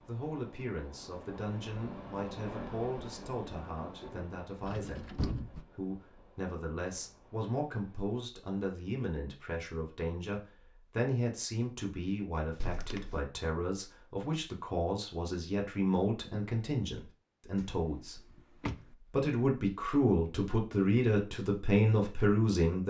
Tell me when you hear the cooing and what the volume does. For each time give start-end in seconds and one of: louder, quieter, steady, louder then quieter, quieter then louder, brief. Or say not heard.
not heard.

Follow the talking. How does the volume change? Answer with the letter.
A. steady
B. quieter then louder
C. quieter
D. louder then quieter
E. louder
E.